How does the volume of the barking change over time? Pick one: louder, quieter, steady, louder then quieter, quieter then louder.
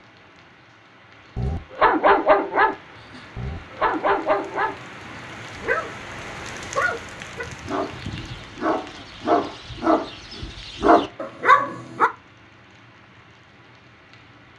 quieter then louder.